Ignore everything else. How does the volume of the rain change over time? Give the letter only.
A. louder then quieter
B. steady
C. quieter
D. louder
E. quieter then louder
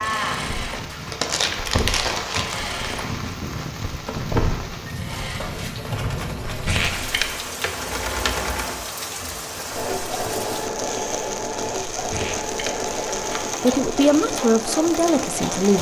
B.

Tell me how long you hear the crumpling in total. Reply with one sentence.
You can hear the crumpling for 4 seconds altogether.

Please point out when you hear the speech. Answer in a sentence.
The speech can be heard from 13.6 to 15.7 s.